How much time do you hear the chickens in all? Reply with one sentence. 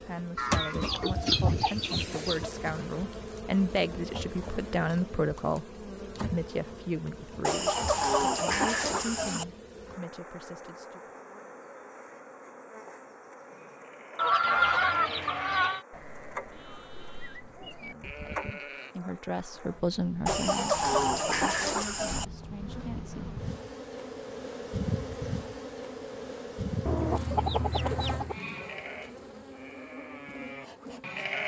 The chickens can be heard for 9 seconds in total.